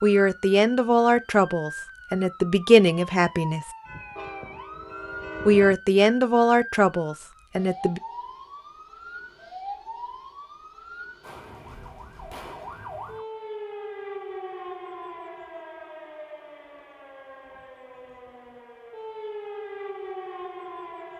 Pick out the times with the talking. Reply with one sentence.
You can hear the talking from 0.0 to 3.7 s and from 5.5 to 8.0 s.